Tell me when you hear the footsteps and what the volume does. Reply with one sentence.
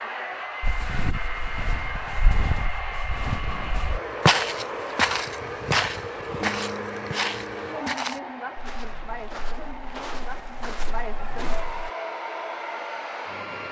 You can hear the footsteps from 0.6 to 11.9 s, getting louder then quieter.